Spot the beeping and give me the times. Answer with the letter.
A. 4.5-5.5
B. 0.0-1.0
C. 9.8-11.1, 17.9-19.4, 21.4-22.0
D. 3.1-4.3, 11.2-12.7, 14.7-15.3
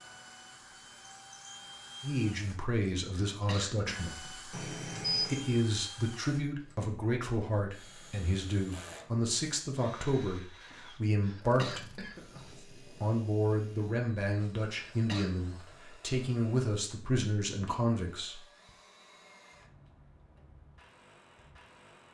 A.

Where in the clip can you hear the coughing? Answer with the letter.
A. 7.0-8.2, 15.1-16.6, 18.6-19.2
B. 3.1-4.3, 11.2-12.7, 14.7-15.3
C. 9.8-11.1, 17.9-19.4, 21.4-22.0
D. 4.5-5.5
B.